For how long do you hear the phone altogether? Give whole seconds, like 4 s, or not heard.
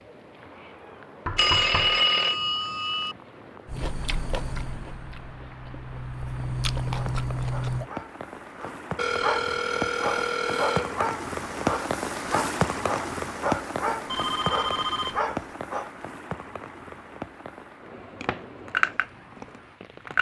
5 s.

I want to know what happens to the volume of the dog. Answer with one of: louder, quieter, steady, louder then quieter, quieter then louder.
louder.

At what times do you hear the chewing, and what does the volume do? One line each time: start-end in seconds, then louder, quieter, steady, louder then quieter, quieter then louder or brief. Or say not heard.
3.6-7.9 quieter then louder
18.2-20.1 brief.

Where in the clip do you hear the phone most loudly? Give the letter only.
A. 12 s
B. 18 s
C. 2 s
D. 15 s
C.